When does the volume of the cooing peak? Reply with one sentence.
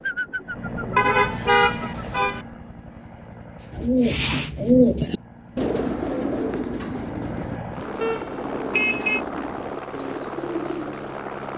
The volume of the cooing peaks at 5 seconds.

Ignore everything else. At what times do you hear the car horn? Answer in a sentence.
You can hear the car horn from 0.9 to 2.5 s and from 8.0 to 9.2 s.